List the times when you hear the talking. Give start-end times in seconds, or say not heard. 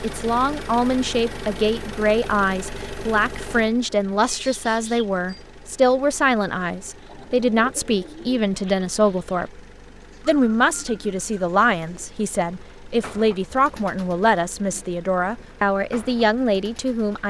0.0-9.6, 10.2-17.2.